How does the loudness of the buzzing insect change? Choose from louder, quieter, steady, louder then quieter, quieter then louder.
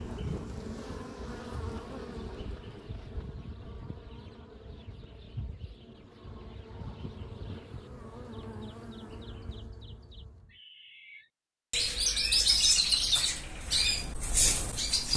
quieter then louder.